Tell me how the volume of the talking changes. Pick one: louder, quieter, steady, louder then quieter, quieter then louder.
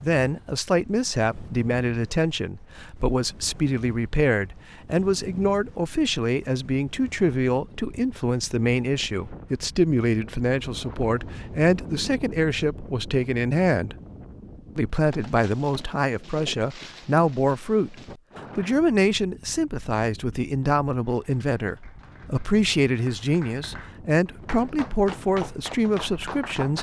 steady.